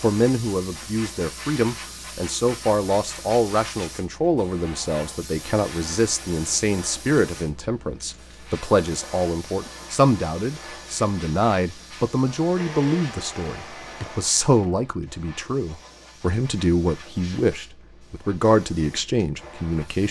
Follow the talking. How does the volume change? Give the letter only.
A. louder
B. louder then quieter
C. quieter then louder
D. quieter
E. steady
E.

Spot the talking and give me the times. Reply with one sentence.
You can hear the talking from 0.0 to 20.0 s.